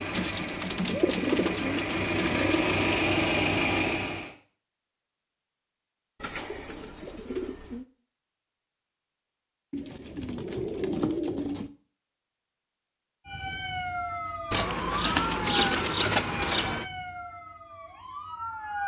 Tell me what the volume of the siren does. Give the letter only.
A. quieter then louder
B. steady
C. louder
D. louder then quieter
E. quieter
E.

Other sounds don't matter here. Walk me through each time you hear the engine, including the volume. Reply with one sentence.
You can hear the engine from 0.0 to 4.3 s, getting louder.